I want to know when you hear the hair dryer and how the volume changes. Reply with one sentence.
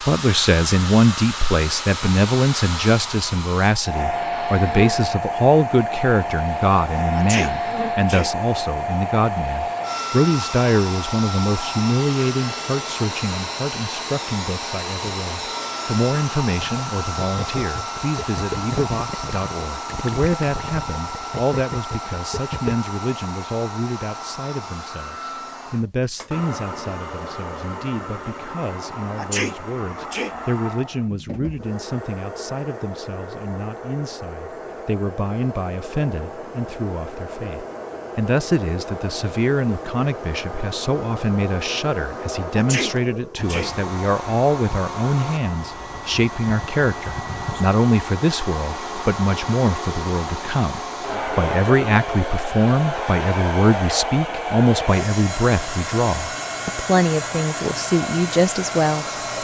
The hair dryer can be heard from 0.0 to 59.4 s, getting quieter then louder.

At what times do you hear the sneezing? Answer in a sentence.
You can hear the sneezing from 7.2 to 8.3 s, from 29.1 to 30.4 s and from 42.5 to 43.8 s.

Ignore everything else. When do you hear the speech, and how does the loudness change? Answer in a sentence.
The speech can be heard from 0.1 to 59.4 s, getting quieter then louder.